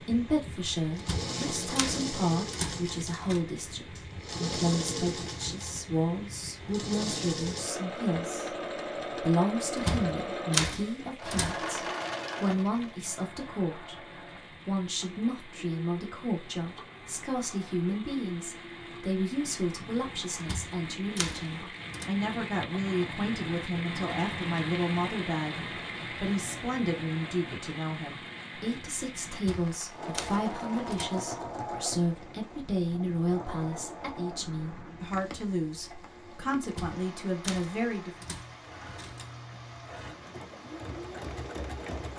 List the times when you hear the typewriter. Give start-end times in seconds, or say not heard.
0.9-3.4, 9.8-11.6, 20.4-22.1, 29.4-31.1, 36.6-39.3.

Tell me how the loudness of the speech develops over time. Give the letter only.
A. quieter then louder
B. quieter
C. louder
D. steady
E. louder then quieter
D.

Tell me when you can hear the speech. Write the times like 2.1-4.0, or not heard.
0.0-38.2.